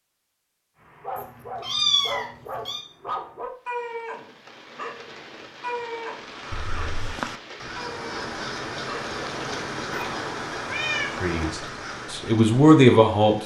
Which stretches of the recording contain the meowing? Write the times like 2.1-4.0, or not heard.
1.1-2.9, 6.5-7.2, 9.9-11.5.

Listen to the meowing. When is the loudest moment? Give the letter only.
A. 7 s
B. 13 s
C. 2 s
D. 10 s
C.